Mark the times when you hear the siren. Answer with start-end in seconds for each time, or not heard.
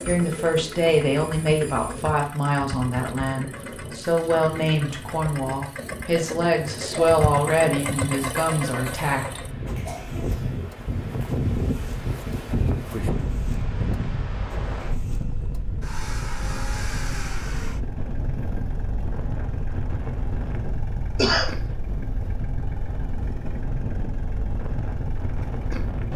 not heard.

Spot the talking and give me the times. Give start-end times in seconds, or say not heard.
0.1-9.4.